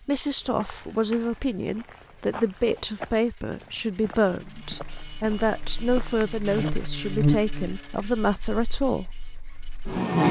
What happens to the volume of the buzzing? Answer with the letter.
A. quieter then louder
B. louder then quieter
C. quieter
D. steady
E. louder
B.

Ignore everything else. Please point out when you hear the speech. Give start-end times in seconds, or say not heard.
0.0-9.1.